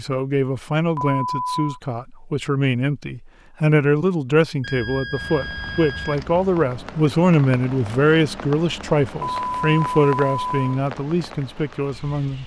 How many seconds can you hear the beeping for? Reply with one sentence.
The beeping can be heard for 4 seconds in total.